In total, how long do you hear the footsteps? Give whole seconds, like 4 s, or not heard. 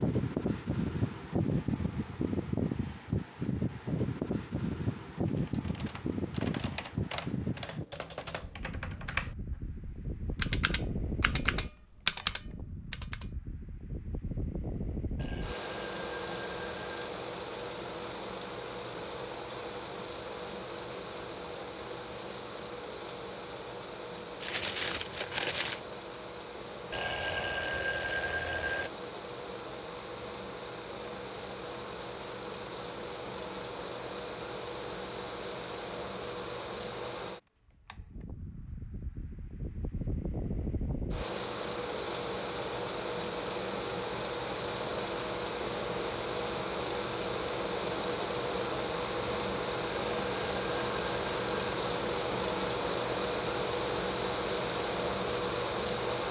not heard.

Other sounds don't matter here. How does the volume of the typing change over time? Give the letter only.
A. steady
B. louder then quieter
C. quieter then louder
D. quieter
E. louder
E.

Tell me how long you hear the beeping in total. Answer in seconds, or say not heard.
6 s.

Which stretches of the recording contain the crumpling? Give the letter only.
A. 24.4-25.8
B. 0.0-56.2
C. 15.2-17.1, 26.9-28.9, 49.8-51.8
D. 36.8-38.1
A.